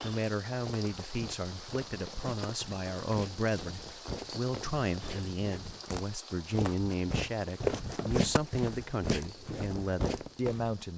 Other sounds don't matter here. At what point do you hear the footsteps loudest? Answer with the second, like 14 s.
8 s.